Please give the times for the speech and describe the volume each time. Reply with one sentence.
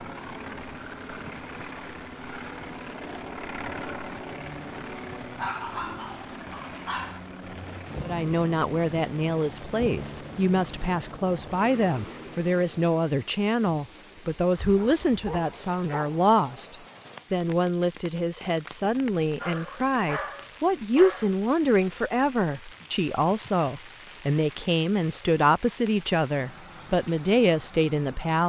The speech can be heard from 8.0 to 28.4 s, at a steady volume.